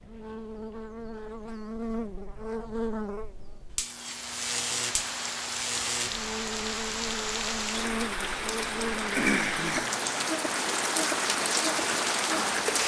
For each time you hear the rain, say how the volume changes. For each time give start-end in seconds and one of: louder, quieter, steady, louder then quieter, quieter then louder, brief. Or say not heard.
4.0-12.8 louder.